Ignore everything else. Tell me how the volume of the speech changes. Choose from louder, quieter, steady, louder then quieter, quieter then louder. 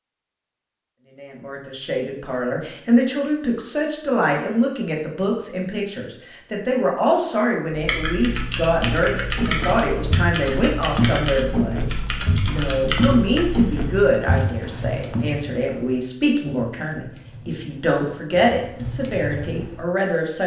steady.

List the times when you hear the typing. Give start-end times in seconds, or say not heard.
7.7-19.9.